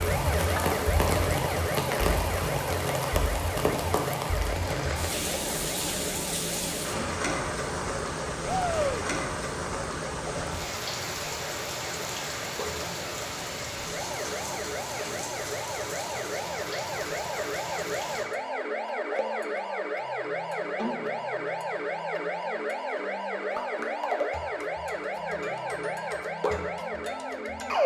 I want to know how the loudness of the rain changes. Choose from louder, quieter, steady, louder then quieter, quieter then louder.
quieter.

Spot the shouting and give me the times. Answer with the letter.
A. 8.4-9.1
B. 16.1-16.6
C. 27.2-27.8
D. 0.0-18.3
A.